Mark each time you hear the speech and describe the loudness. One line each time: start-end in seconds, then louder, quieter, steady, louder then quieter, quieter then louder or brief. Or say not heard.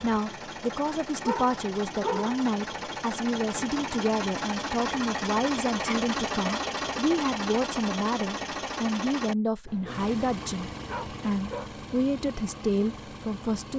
0.0-13.7 steady.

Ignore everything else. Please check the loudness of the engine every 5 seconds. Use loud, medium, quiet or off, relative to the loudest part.
loud, loud, medium.